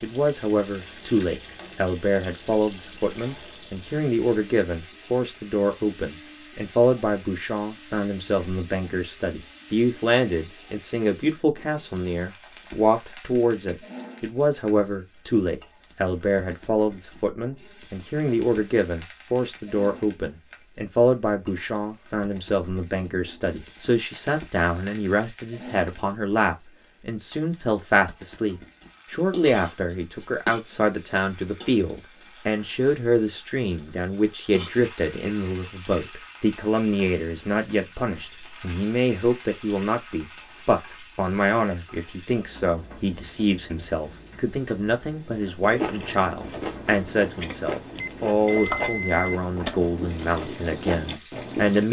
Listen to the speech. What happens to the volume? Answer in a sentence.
The loudness of the speech stays about the same.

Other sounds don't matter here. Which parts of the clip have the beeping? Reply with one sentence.
The beeping can be heard from 48.0 to 49.4 s.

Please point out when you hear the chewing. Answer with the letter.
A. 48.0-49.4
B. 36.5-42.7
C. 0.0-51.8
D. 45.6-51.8
D.